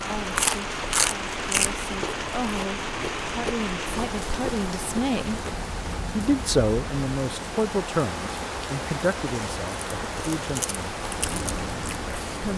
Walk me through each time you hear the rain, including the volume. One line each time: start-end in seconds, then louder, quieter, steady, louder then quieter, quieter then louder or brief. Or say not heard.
0.0-12.5 steady.